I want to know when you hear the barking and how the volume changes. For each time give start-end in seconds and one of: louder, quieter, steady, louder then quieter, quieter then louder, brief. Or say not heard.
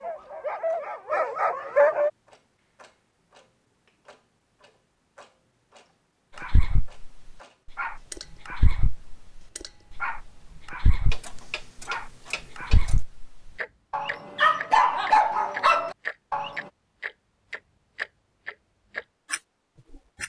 0.0-2.1 brief
6.3-16.6 louder.